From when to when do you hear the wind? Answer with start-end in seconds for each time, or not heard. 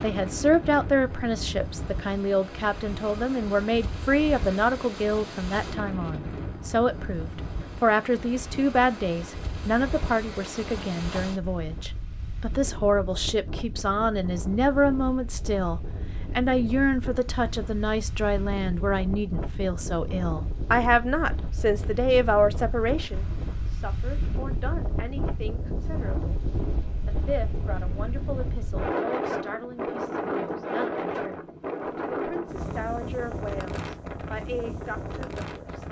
0.0-35.8.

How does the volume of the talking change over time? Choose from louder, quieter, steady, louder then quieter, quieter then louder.
quieter.